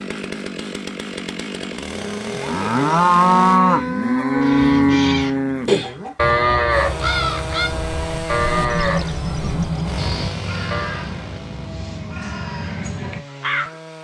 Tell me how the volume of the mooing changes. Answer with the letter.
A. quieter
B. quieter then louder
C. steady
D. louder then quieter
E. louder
A.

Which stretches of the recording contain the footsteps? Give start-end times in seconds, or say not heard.
not heard.